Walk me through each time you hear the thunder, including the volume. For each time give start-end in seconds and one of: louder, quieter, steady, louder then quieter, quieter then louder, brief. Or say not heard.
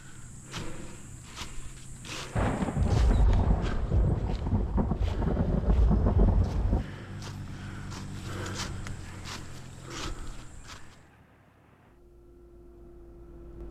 2.4-6.8 steady.